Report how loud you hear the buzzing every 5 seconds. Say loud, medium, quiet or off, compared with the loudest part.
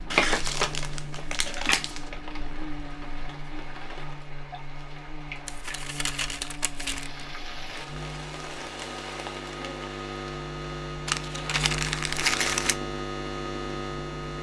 medium, medium, loud.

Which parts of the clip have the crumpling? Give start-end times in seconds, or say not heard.
0.1-2.0, 5.5-7.1, 11.1-12.8.